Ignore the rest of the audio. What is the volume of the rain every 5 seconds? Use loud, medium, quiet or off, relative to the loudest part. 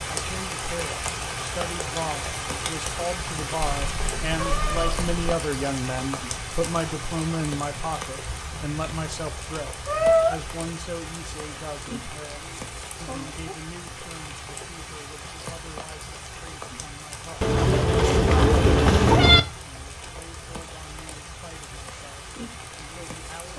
loud, loud, medium, medium, medium.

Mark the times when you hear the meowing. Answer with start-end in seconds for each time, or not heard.
3.7-5.2, 9.8-10.3, 17.4-19.4.